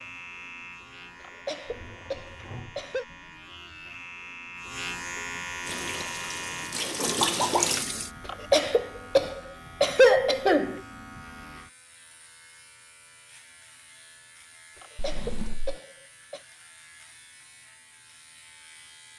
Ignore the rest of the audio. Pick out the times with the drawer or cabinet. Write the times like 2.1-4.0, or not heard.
1.6-3.4, 14.9-15.8.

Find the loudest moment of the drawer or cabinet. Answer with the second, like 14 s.
15 s.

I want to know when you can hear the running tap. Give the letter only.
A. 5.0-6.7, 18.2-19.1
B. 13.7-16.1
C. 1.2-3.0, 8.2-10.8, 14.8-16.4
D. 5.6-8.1
D.